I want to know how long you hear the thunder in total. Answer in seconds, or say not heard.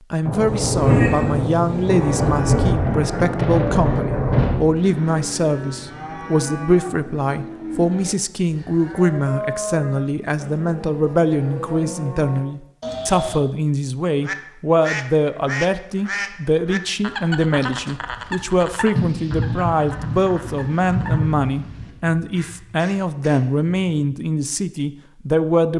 7 s.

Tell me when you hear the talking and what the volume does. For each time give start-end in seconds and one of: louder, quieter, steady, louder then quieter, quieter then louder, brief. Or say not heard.
0.1-25.7 steady.